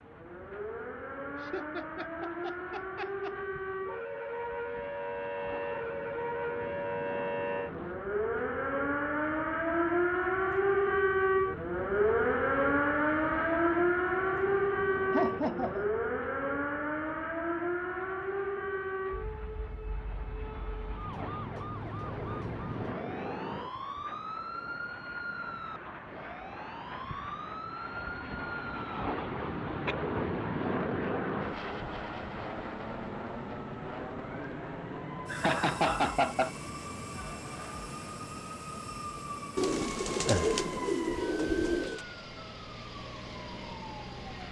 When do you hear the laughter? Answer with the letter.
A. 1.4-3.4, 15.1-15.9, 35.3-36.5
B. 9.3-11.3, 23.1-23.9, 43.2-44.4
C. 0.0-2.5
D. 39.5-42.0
A.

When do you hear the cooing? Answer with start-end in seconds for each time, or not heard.
39.5-42.0.